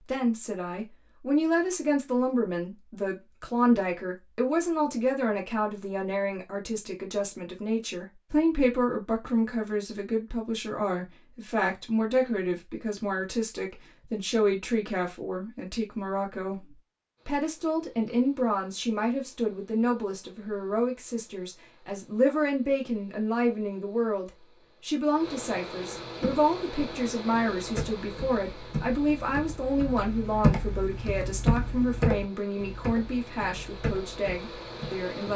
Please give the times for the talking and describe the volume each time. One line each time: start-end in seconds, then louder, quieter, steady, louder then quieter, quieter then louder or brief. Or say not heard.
0.0-35.3 steady.